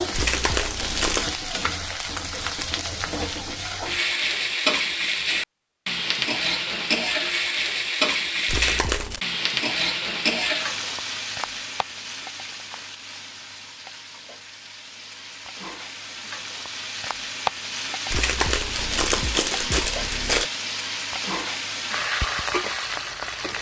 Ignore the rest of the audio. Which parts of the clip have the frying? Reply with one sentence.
You can hear the frying from 0.0 to 23.5 s.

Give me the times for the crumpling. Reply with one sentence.
The crumpling can be heard from 0.1 to 1.4 s, from 8.4 to 9.2 s and from 18.1 to 20.5 s.